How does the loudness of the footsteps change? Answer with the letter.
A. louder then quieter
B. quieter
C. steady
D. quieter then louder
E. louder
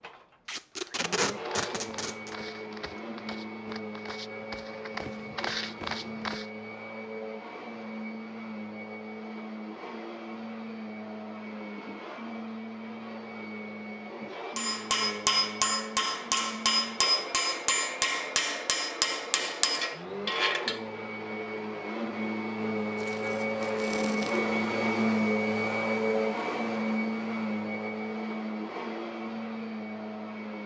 E.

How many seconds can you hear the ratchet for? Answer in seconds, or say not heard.
not heard.